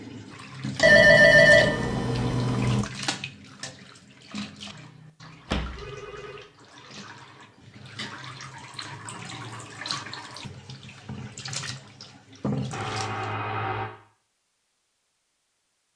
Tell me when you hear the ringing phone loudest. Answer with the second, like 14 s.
1 s.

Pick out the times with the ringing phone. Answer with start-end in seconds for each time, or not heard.
0.8-2.9, 5.5-6.4, 12.7-13.9.